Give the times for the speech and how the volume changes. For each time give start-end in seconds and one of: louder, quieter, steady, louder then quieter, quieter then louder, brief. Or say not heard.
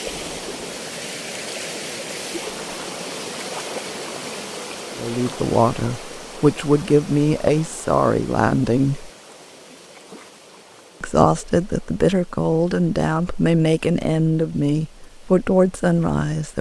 5.0-9.1 steady
11.0-16.5 steady.